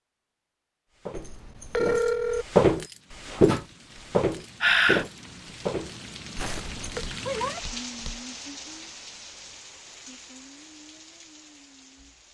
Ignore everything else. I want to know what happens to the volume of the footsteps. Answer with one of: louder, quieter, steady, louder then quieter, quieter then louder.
quieter.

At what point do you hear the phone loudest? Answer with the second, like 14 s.
2 s.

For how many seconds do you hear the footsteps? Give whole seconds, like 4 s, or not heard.
7 s.